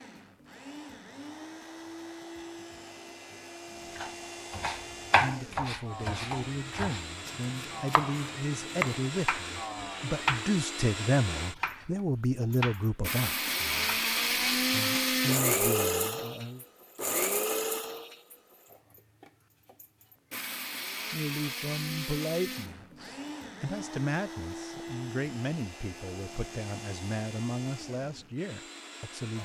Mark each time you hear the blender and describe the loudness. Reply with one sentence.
You can hear the blender from 0.0 to 29.4 s, getting louder then quieter.